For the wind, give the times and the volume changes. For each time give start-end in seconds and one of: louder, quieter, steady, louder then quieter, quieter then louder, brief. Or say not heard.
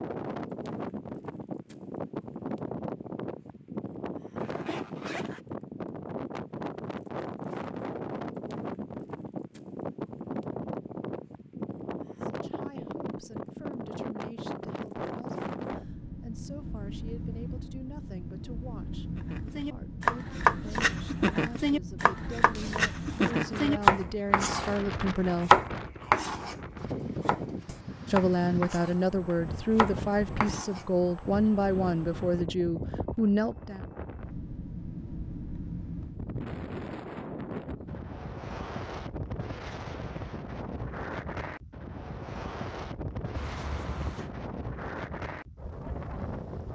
0.0-46.6 steady.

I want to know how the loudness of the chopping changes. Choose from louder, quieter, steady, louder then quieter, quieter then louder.
quieter.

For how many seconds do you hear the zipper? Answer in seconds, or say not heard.
3 s.